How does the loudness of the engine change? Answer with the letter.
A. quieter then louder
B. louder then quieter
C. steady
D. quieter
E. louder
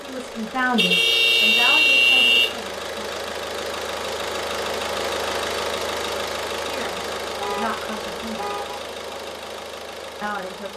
B.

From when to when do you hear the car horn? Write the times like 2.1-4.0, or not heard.
0.8-2.5, 7.4-8.8.